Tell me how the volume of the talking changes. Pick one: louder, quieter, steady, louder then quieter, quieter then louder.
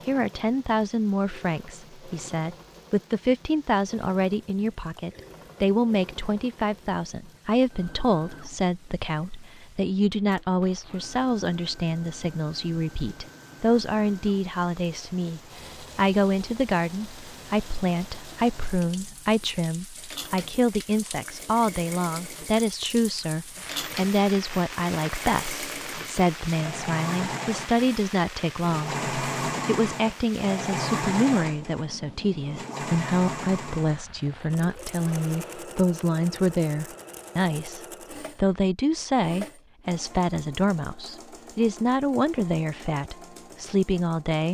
steady.